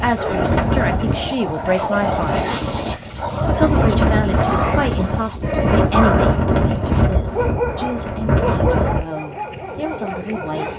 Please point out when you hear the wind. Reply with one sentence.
The wind can be heard from 0.0 to 9.1 s.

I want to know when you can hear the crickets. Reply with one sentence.
You can't hear the crickets here.